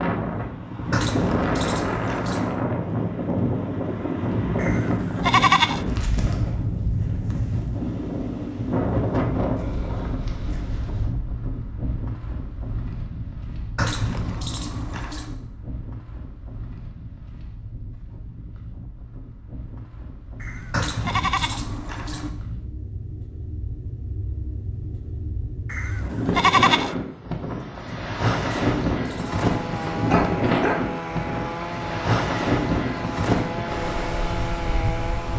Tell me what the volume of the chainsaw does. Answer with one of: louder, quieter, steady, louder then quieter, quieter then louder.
steady.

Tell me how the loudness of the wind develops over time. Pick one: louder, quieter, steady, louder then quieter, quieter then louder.
quieter then louder.